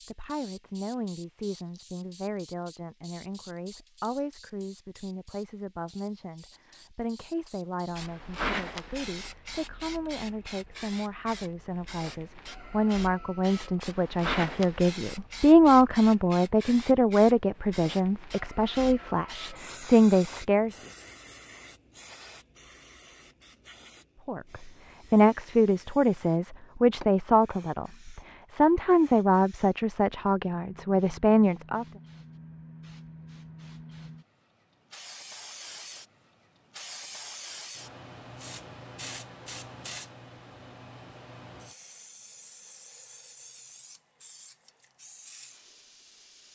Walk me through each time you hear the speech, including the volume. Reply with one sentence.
The speech can be heard from 0.1 to 20.8 s, getting louder; and from 24.2 to 31.9 s, at a steady volume.